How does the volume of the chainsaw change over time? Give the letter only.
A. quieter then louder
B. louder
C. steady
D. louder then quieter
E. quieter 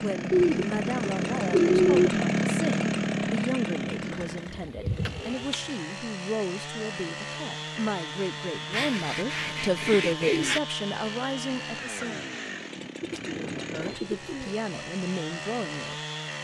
E.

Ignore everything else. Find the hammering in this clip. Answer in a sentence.
You can't hear the hammering here.